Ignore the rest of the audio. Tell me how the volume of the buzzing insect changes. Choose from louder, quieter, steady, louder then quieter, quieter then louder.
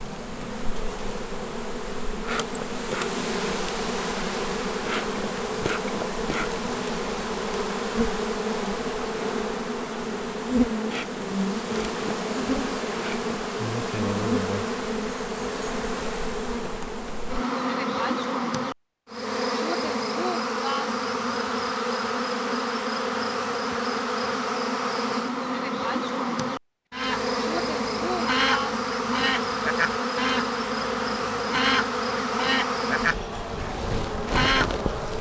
steady.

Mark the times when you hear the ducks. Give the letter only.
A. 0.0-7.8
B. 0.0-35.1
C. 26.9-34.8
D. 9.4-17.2
C.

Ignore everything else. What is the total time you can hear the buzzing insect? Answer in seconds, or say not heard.
35 s.